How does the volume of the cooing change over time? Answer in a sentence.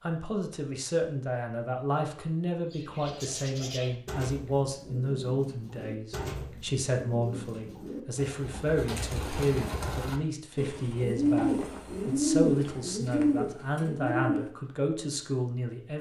The volume of the cooing goes up.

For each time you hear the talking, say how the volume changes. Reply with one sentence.
The talking can be heard from 0.0 to 15.9 s, at a steady volume.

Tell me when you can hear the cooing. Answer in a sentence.
The cooing can be heard from 2.7 to 14.7 s.